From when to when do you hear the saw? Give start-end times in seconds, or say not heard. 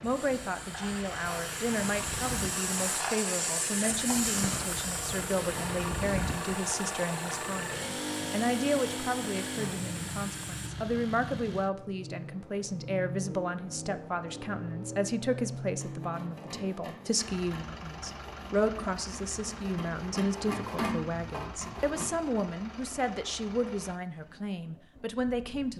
15.7-22.4.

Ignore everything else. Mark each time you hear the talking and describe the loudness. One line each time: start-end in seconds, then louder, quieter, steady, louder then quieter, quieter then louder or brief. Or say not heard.
0.0-25.7 steady.